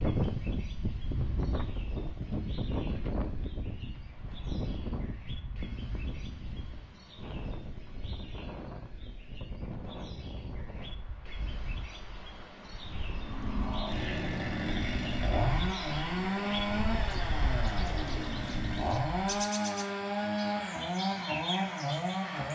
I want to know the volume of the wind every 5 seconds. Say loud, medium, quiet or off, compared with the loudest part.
loud, medium, medium, medium, off.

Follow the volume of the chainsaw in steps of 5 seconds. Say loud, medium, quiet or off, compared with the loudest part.
off, off, loud, loud, loud.